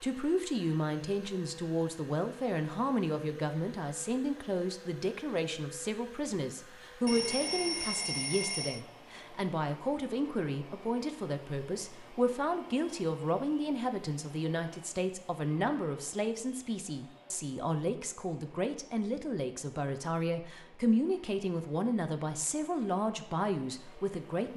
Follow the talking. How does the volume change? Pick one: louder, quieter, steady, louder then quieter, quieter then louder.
steady.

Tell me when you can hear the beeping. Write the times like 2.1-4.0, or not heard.
7.0-8.8.